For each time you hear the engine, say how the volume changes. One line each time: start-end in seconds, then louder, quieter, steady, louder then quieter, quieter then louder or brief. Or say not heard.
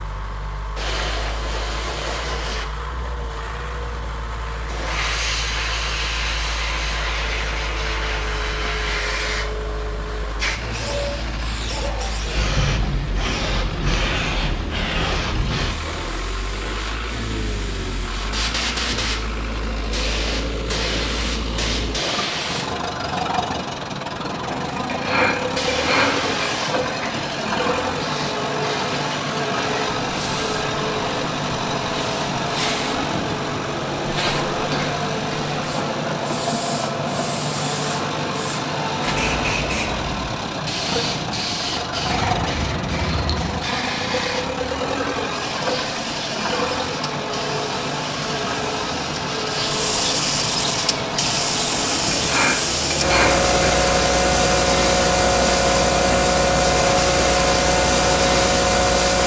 0.0-59.2 louder.